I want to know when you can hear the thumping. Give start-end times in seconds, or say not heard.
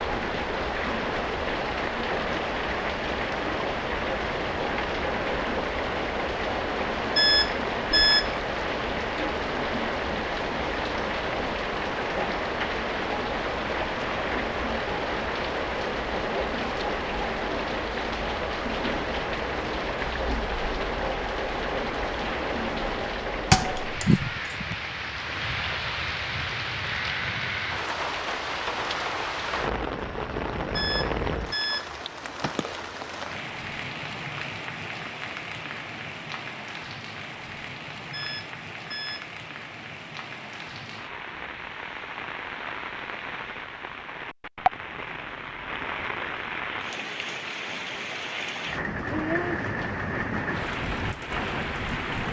23.5-24.6.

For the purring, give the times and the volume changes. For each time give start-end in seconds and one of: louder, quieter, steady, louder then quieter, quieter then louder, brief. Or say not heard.
not heard.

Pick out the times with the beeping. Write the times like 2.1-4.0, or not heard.
7.2-8.3, 30.8-31.9, 38.1-39.2.